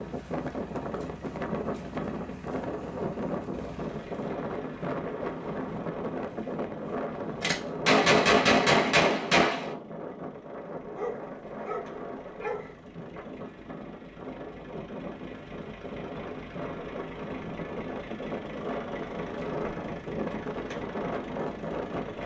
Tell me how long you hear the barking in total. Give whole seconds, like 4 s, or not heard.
2 s.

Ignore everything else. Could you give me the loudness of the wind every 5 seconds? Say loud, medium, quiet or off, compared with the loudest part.
loud, loud, medium, loud, loud.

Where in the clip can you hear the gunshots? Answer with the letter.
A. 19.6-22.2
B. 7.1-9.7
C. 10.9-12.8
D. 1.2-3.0
B.